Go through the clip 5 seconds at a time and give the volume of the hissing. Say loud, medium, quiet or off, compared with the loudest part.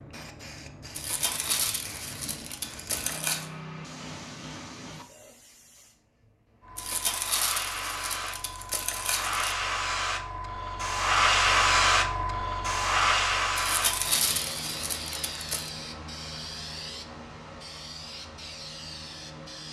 quiet, medium, loud, quiet.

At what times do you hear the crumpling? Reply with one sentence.
The crumpling can be heard from 0.9 to 3.5 s, from 6.8 to 9.6 s and from 13.6 to 15.7 s.